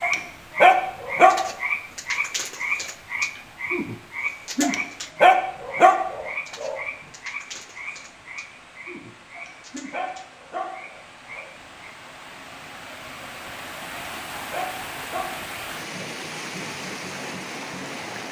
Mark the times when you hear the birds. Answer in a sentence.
You can't hear the birds here.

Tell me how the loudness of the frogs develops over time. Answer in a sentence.
The volume of the frogs goes down.